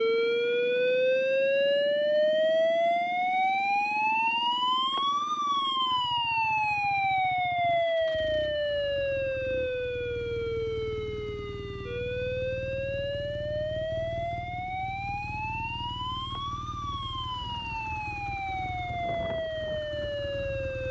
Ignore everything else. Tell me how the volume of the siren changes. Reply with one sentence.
The volume of the siren goes down.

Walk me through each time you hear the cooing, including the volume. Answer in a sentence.
You can't hear the cooing here.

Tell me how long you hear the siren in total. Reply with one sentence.
You can hear the siren for 21 seconds altogether.